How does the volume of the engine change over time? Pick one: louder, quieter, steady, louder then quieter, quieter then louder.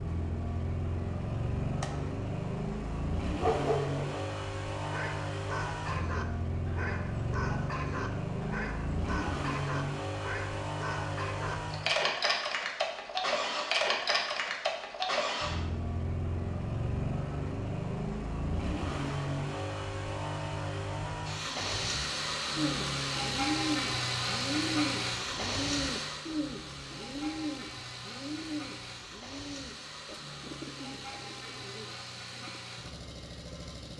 quieter.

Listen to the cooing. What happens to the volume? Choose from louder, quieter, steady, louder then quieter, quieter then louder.
quieter.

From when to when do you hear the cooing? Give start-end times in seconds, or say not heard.
22.6-32.6.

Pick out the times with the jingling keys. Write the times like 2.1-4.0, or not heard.
not heard.